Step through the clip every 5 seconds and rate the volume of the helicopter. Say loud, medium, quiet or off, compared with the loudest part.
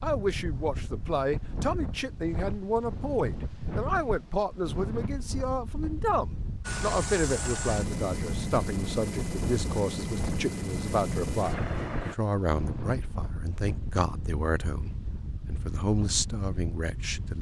off, loud, loud, off.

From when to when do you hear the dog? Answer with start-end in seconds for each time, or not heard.
not heard.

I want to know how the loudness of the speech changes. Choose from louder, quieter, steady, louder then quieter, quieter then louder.
steady.